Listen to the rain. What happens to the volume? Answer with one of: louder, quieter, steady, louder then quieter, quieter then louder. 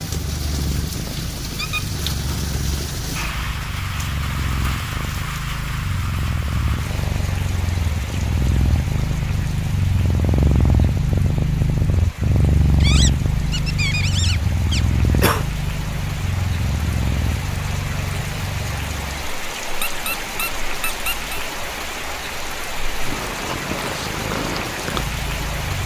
quieter then louder.